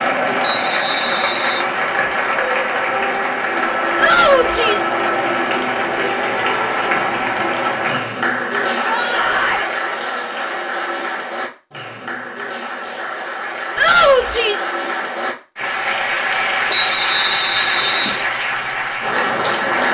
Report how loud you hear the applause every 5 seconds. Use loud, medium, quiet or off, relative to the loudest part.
loud, loud, medium, loud.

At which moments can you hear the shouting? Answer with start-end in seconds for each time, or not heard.
4.0-4.9, 8.8-9.7, 13.8-14.7.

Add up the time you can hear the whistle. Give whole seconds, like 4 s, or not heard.
3 s.